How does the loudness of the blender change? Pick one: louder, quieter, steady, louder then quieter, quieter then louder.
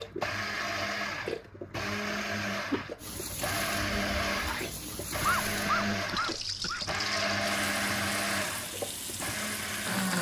steady.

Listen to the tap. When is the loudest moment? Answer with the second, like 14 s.
7 s.